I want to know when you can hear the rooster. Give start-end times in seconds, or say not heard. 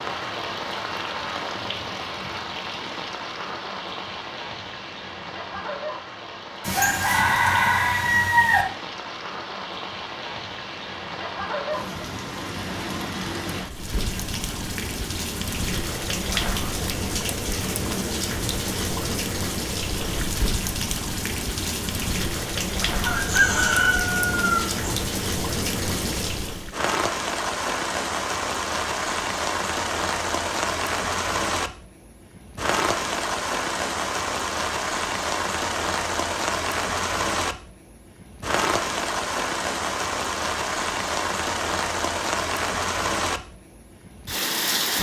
6.6-8.7, 23.0-24.9.